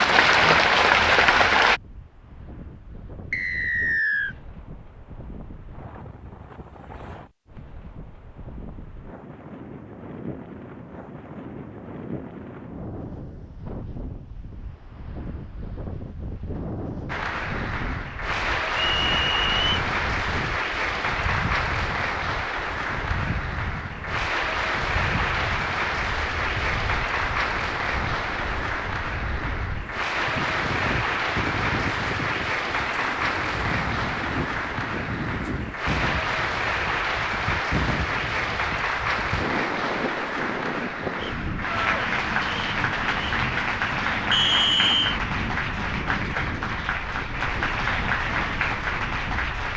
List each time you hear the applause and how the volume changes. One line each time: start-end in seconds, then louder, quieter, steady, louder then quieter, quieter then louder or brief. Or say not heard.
0.0-1.8 brief
17.1-49.7 steady.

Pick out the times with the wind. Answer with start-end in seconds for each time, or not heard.
0.0-49.7.